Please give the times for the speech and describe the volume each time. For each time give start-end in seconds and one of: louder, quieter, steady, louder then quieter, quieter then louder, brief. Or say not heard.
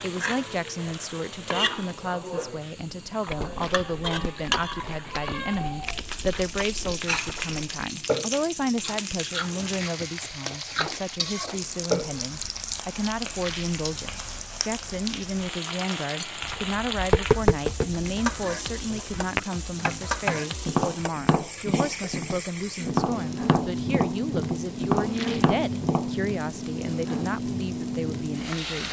0.0-28.8 steady.